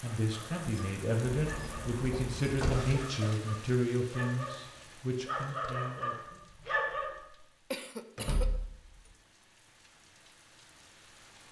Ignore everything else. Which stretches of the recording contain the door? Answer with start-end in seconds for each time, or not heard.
1.2-2.9, 8.2-9.1.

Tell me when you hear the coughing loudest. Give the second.
8 s.